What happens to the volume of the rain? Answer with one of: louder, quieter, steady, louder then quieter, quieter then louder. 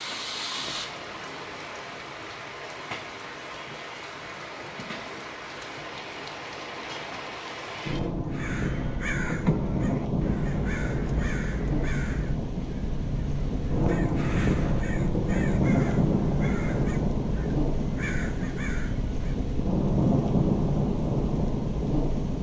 louder.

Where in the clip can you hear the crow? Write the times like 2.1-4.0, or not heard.
8.2-19.4.